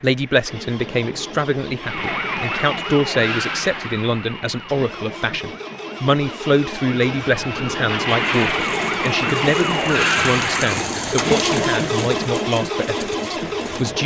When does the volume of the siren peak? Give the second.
10 s.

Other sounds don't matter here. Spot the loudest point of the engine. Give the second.
12 s.